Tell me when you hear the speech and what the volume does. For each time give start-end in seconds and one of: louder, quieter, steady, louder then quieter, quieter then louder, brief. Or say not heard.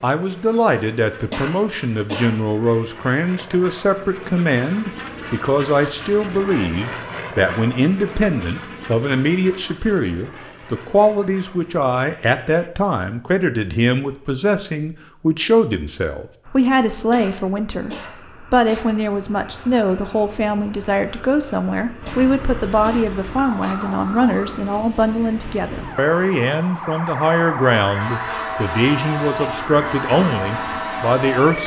0.0-31.6 steady.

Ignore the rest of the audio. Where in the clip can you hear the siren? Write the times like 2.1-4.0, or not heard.
22.0-31.6.